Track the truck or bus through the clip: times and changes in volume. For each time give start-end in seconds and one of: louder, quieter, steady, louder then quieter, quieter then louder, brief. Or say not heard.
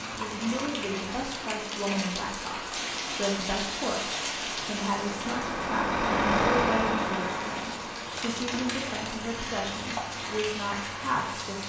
0.0-11.6 louder then quieter.